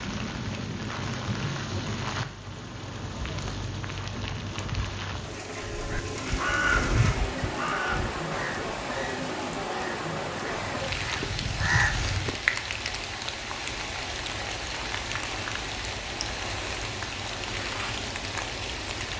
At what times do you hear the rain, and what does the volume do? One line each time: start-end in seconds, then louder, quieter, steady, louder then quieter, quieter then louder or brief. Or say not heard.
0.0-19.1 steady.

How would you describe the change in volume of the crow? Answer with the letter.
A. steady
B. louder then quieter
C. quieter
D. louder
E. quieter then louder
E.